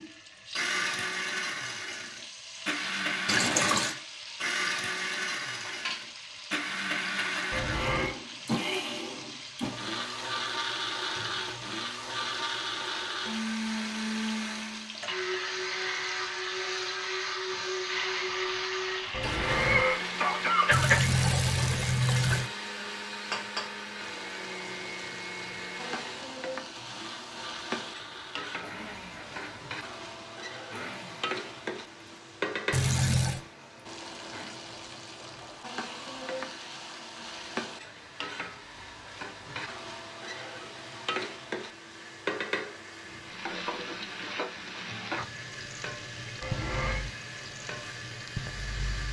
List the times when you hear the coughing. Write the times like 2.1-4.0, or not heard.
7.5-8.2, 19.1-21.1, 46.4-47.0.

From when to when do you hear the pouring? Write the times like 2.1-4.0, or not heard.
3.2-4.0, 20.7-22.5, 32.7-33.4.